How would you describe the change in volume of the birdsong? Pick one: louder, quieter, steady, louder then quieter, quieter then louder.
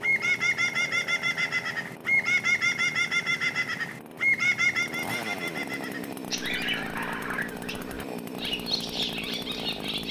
quieter.